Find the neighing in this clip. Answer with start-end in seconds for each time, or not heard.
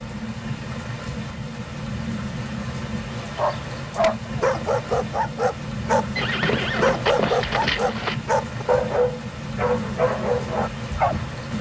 6.2-8.2.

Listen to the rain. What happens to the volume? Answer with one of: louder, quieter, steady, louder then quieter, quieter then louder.
steady.